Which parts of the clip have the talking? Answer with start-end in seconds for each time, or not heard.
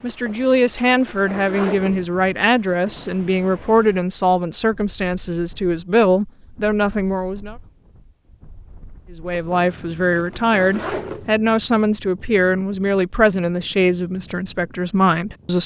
0.0-7.5, 9.1-15.6.